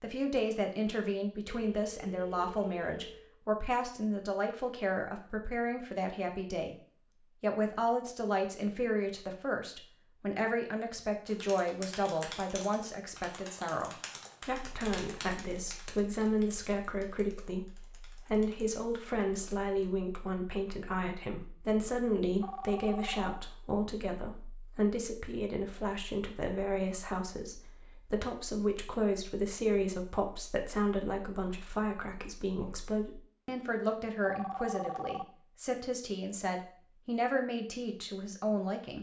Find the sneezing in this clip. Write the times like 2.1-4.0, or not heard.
not heard.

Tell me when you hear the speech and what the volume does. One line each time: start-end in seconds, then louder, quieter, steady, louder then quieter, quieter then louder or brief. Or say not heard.
0.0-38.9 steady.